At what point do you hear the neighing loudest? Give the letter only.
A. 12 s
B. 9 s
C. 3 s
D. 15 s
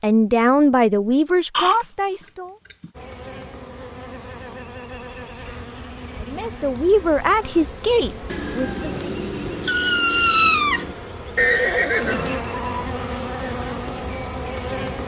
A.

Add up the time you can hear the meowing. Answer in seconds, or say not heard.
3 s.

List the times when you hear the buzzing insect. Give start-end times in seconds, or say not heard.
3.0-15.0.